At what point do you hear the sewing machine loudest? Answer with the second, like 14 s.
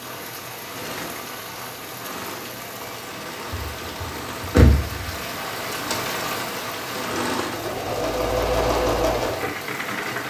9 s.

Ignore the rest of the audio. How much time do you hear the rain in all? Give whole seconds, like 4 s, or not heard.
10 s.